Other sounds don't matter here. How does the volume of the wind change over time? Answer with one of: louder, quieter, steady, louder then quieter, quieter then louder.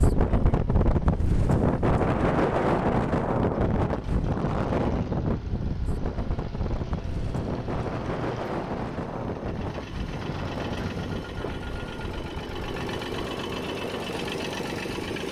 quieter.